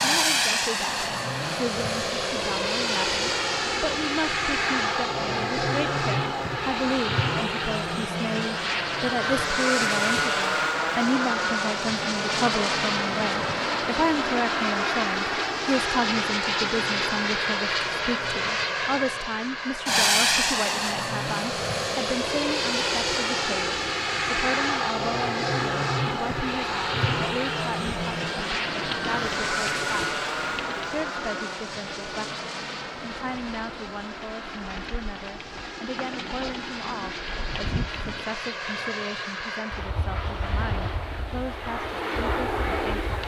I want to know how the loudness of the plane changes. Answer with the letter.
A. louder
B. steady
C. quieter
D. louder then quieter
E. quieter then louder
C.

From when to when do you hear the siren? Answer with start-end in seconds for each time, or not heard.
not heard.